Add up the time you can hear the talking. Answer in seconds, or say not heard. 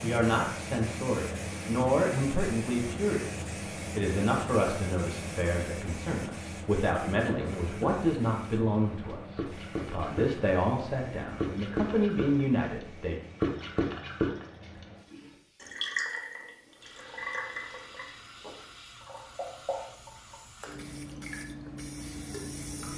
13 s.